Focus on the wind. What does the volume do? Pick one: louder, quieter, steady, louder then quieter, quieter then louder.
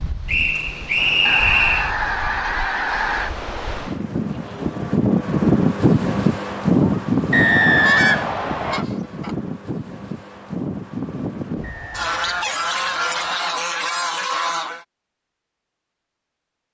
louder then quieter.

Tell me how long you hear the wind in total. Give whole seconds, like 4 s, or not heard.
12 s.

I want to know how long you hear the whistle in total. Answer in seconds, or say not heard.
5 s.